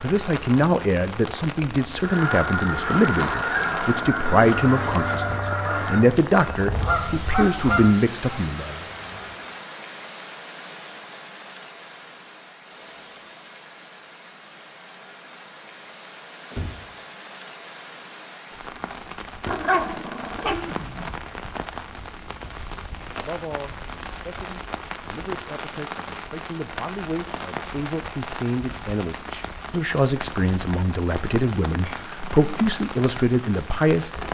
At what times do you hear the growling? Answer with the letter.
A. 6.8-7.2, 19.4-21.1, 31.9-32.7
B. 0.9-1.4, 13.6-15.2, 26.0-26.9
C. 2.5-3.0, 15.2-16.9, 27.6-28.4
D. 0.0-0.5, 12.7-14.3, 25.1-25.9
A.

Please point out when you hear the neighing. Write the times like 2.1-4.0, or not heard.
not heard.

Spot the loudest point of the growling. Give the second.
20 s.